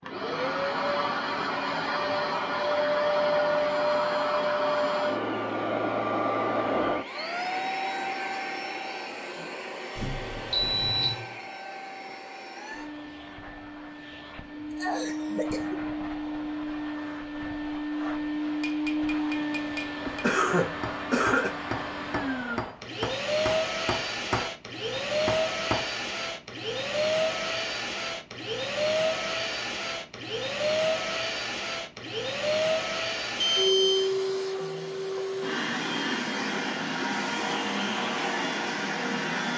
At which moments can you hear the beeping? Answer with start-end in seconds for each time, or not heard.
9.9-11.1, 33.4-34.1.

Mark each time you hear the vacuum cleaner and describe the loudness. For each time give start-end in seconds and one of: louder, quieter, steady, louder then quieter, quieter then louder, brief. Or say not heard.
0.0-39.5 quieter then louder.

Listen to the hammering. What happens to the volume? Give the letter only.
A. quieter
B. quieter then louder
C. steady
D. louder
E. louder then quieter
D.